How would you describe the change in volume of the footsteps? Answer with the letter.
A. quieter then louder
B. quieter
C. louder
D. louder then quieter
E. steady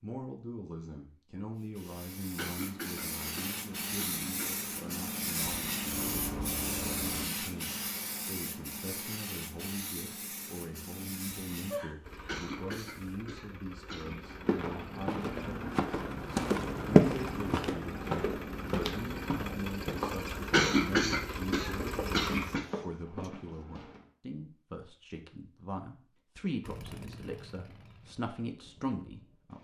D.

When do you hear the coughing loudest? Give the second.
21 s.